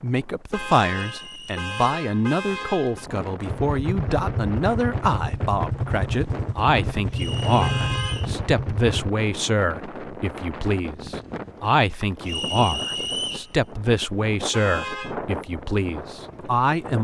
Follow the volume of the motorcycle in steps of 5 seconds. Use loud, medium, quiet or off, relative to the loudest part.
loud, loud, off, off.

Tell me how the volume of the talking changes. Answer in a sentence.
The volume of the talking stays about the same.